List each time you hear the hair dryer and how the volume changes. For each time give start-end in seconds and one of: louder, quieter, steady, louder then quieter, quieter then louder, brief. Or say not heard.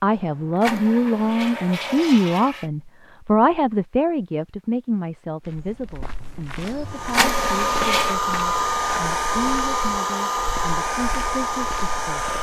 6.8-12.3 steady.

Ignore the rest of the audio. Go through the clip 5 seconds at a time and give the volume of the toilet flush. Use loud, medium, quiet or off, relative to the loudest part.
medium, loud, off.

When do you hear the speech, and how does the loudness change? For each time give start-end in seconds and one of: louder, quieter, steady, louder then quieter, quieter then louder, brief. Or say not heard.
0.0-12.3 quieter.